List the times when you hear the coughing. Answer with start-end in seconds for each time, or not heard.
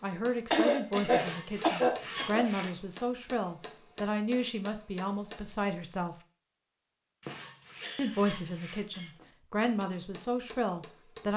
0.5-2.5, 7.2-9.2.